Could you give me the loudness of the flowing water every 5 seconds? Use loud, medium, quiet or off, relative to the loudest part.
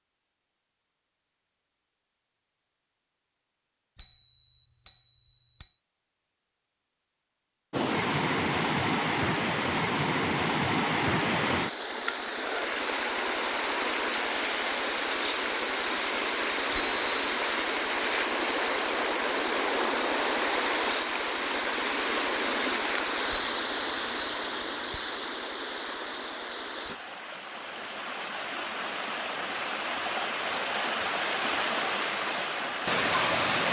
off, loud, loud, loud, loud, medium, loud.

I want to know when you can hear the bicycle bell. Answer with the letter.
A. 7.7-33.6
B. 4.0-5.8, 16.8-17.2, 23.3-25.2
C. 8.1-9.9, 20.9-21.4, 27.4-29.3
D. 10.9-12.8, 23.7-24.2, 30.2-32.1
B.